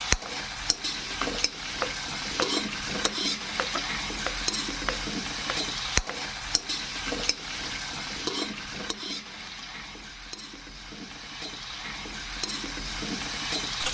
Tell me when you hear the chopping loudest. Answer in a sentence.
The loudest moment of the chopping is at 2 seconds.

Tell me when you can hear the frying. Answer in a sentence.
You can hear the frying from 0.0 to 13.8 s.